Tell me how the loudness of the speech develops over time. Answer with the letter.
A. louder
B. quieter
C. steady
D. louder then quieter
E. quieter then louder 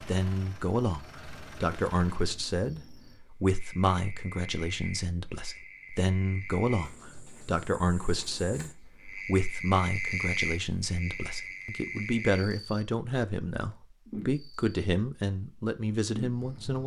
C.